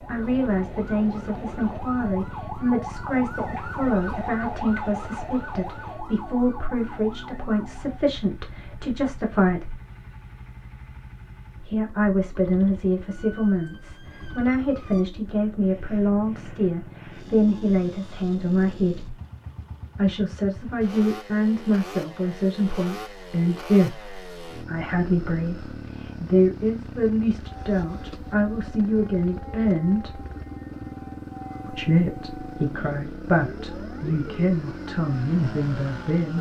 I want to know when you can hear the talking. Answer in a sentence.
You can hear the talking from 0.1 to 9.8 s, from 11.6 to 19.1 s, from 19.9 to 30.2 s and from 31.6 to 36.3 s.